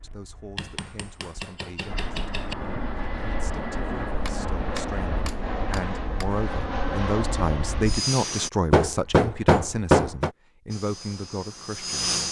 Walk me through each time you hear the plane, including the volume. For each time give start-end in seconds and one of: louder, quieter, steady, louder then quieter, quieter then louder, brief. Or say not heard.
0.0-8.5 louder
10.7-12.2 brief.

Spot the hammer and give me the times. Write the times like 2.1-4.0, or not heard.
0.6-2.5, 4.2-6.2, 8.7-10.3.